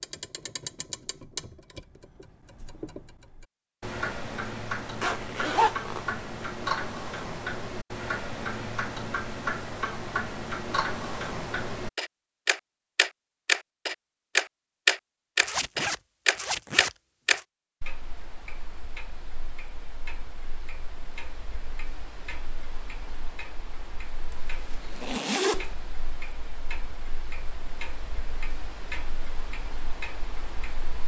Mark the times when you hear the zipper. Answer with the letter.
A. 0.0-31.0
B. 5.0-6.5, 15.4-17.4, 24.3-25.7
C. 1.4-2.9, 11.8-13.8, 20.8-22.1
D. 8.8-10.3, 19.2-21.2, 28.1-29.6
B.